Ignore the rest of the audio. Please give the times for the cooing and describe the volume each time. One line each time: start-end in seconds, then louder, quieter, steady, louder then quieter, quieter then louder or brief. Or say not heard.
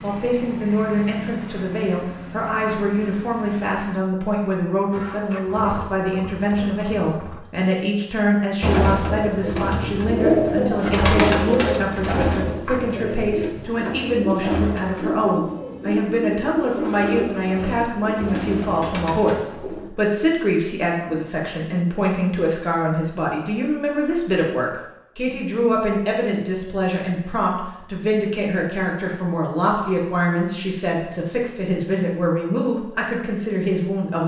8.6-19.9 quieter.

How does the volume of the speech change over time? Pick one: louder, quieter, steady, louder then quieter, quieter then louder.
steady.